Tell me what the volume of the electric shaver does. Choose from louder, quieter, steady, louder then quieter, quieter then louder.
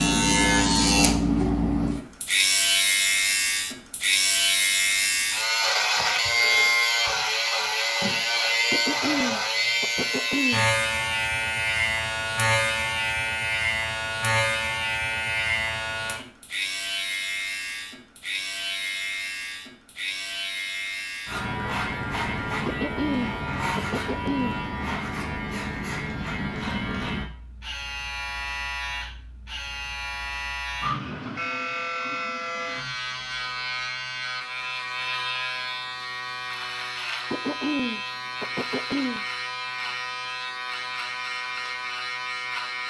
quieter.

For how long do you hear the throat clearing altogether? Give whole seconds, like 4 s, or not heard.
6 s.